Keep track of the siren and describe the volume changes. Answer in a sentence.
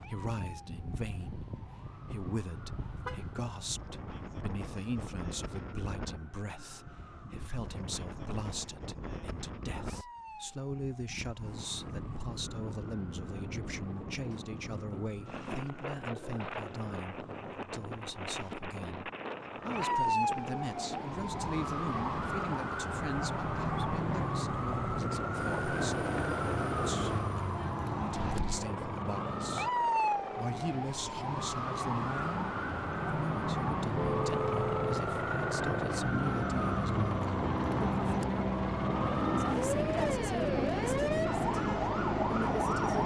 The volume of the siren goes up.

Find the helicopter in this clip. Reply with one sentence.
The helicopter can be heard from 25.3 to 43.0 s.